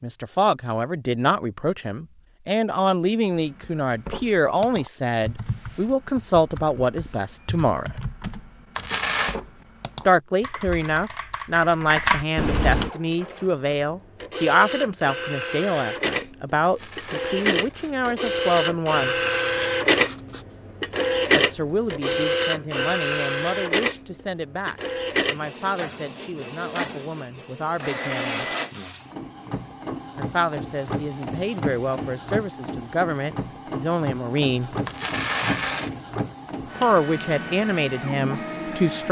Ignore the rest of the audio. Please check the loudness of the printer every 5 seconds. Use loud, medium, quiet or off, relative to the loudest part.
off, off, medium, loud, loud, medium, medium, medium.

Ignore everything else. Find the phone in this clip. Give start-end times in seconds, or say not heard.
not heard.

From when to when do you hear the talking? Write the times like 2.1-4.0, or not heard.
0.0-7.9, 10.1-19.1, 21.3-28.4, 30.1-34.8, 36.8-39.0.